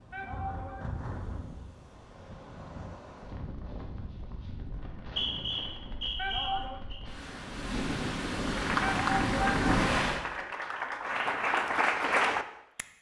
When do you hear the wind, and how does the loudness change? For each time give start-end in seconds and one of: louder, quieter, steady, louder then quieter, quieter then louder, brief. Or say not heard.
0.0-10.2 louder.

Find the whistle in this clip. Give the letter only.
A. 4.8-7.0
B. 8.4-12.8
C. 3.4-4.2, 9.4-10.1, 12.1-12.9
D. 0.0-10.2
A.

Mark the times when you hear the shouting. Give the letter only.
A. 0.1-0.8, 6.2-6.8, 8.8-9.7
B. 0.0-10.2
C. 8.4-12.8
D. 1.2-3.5
A.